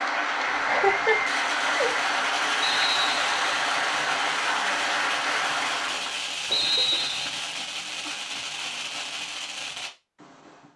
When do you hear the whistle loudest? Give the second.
7 s.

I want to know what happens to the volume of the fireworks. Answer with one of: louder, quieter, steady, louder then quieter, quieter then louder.
steady.